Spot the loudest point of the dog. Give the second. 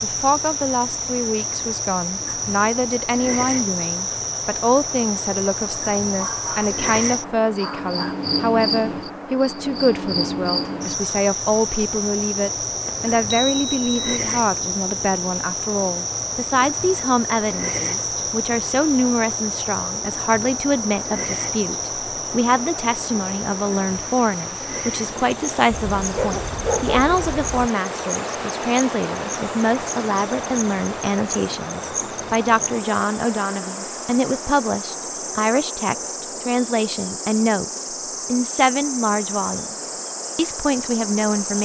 27 s.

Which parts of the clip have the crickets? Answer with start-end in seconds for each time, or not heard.
0.0-41.6.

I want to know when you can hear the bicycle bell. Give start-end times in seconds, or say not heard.
12.8-14.2.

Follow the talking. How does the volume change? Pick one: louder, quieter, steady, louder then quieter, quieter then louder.
steady.